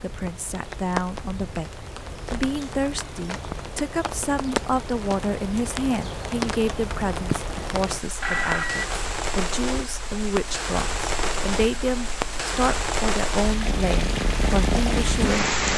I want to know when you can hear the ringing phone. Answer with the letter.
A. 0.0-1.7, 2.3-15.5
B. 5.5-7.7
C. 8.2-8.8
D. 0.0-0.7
C.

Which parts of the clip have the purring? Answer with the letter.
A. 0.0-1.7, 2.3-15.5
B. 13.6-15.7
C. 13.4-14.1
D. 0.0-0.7
B.